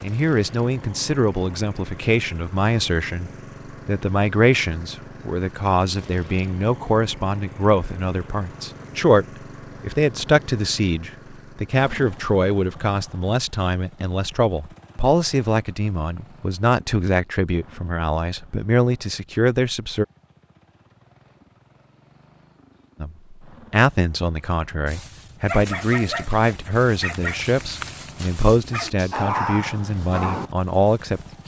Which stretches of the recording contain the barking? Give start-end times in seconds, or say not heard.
24.9-31.4.